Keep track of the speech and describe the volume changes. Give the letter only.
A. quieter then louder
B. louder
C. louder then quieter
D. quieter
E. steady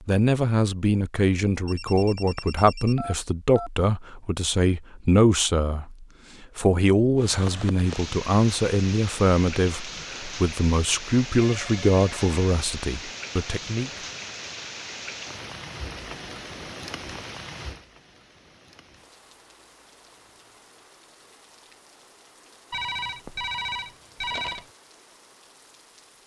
E.